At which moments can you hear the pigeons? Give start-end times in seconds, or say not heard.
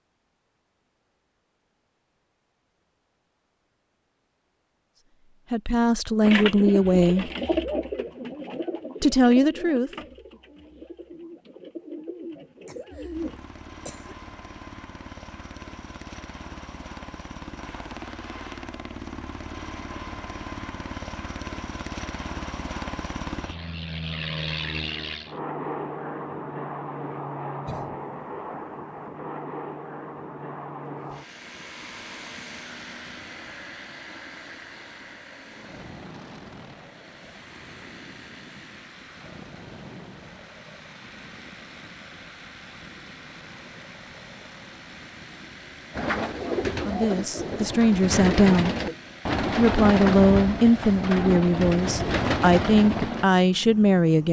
6.2-13.4, 46.0-53.2.